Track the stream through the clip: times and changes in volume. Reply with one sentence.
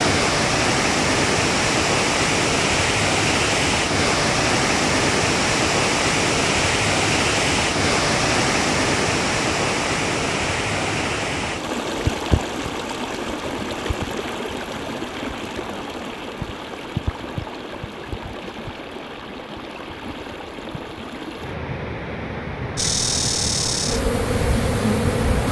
You can hear the stream from 0.0 to 25.4 s, getting quieter.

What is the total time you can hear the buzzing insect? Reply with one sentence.
The buzzing insect can be heard for 3 seconds in total.